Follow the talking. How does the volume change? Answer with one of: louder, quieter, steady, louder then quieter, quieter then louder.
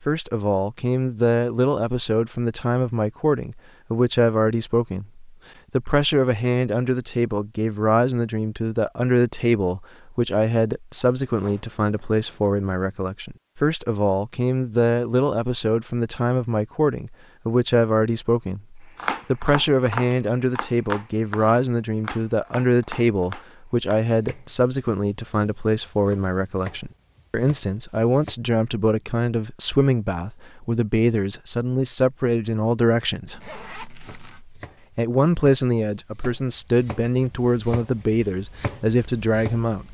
steady.